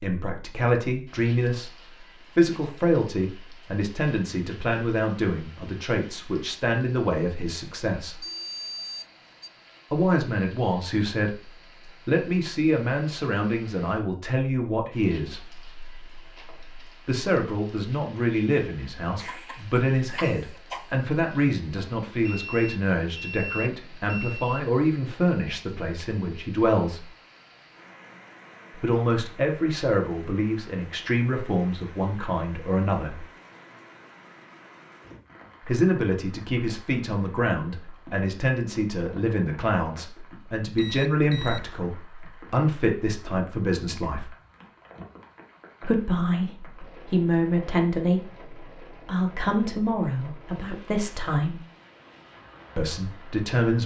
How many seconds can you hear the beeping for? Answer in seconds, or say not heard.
5 s.